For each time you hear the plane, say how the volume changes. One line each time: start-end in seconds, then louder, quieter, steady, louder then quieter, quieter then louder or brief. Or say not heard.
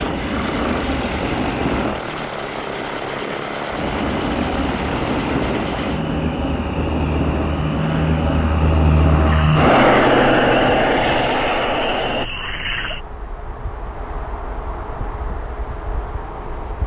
0.0-12.3 louder.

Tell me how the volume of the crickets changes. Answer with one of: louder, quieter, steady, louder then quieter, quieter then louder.
quieter.